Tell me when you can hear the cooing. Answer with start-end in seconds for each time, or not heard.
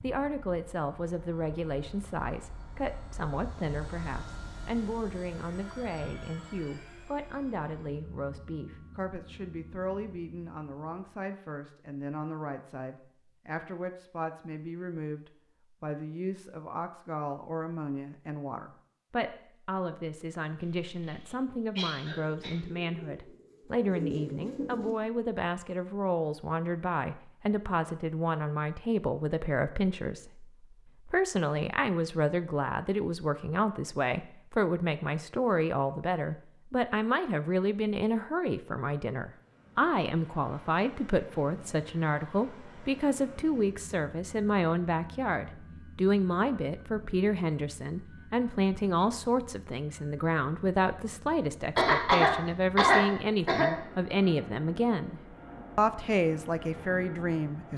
22.1-24.9.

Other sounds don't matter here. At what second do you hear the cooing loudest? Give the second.
24 s.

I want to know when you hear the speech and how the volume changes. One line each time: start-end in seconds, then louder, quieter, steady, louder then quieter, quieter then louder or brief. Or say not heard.
0.0-57.7 louder.